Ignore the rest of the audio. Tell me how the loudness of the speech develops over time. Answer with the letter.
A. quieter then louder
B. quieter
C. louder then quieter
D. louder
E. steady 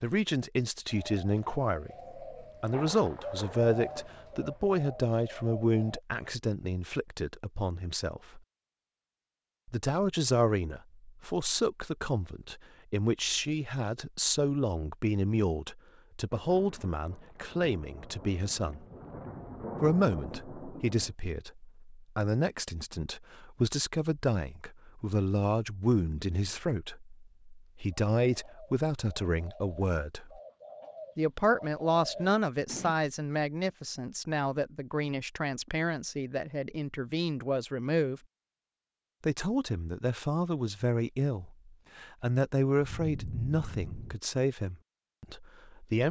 E.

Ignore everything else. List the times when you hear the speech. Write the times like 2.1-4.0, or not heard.
0.0-8.4, 9.7-18.9, 19.8-30.4, 31.1-38.2, 39.2-46.0.